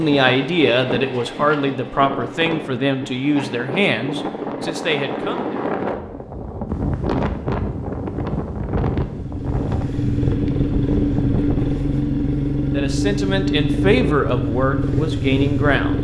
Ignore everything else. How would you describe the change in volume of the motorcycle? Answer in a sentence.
The loudness of the motorcycle stays about the same.